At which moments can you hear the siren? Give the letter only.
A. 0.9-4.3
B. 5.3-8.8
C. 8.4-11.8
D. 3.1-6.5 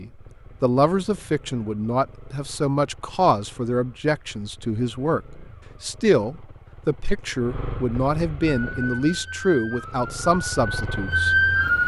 C.